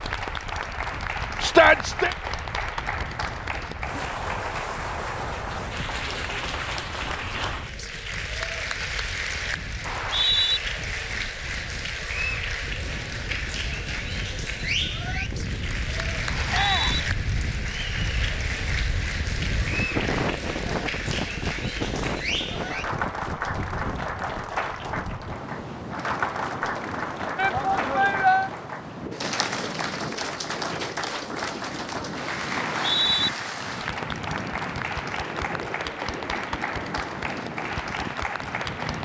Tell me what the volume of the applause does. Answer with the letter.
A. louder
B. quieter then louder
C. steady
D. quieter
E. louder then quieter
C.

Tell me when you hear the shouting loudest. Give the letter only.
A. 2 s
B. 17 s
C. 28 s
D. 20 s
A.